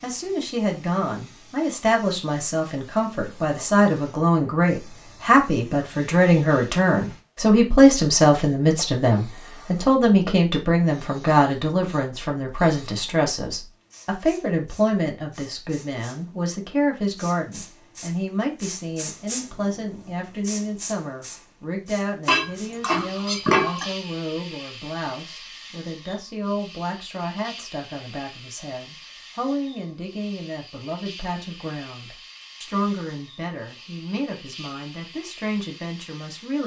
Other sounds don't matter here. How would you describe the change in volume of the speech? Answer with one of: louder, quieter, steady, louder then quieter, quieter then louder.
quieter.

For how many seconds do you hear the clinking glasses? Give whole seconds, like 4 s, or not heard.
2 s.